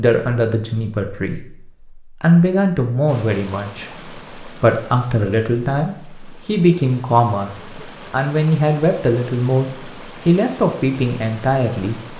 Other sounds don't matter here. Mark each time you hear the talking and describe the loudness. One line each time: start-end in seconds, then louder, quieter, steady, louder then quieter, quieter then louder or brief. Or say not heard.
0.0-12.1 steady.